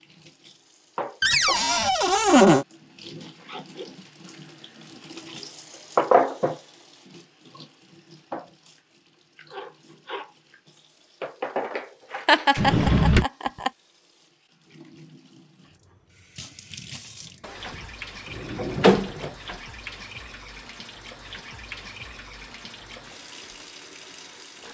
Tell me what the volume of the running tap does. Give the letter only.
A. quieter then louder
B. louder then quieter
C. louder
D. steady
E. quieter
B.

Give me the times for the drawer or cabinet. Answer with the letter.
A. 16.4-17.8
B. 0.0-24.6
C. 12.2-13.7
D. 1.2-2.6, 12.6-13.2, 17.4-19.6
D.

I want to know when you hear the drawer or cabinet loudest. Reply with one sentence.
The volume of the drawer or cabinet peaks at 2 seconds.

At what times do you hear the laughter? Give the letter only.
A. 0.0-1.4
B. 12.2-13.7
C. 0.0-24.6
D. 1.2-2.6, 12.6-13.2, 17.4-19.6
B.